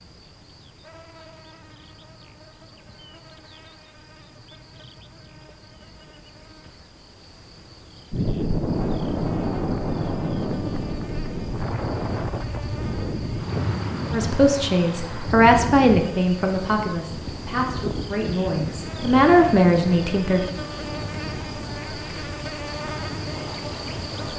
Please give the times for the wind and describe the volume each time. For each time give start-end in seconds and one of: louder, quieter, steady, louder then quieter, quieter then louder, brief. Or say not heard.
8.1-24.3 quieter.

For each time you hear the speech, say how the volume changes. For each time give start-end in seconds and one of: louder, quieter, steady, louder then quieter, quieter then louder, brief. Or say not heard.
14.1-20.5 quieter then louder.